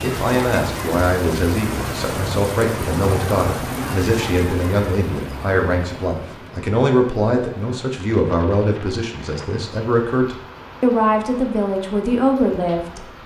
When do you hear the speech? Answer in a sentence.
The speech can be heard from 0.0 to 13.1 s.